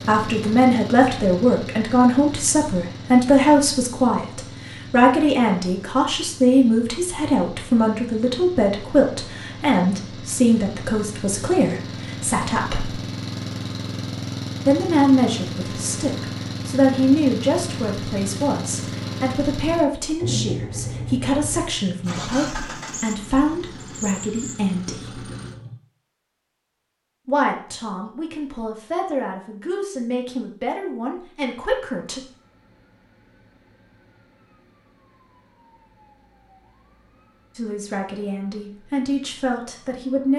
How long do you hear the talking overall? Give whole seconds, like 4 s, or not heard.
31 s.